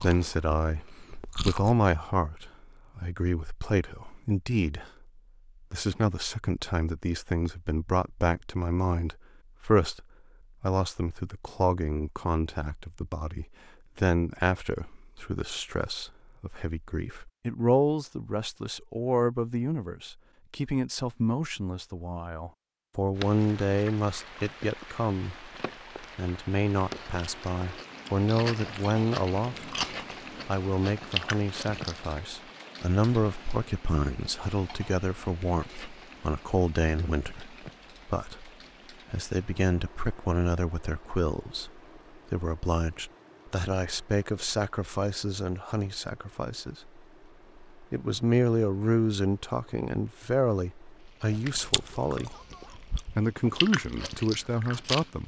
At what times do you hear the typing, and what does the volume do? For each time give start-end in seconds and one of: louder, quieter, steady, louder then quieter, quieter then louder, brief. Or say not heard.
not heard.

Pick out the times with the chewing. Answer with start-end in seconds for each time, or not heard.
0.0-1.8, 26.8-32.1, 51.3-55.2.